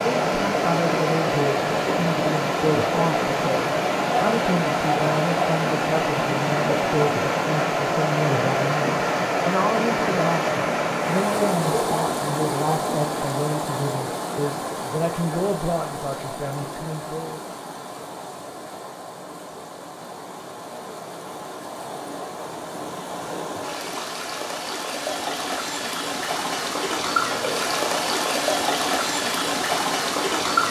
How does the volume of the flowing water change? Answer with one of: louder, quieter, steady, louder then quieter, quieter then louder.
quieter then louder.